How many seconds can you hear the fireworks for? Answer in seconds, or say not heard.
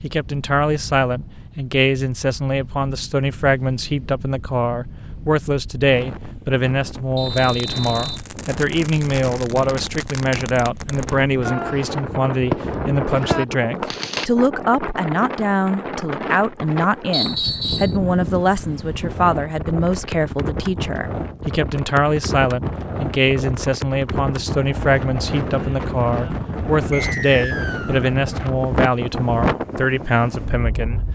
7 s.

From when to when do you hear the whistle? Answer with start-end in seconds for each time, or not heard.
7.2-8.2, 17.1-17.9, 26.9-28.1.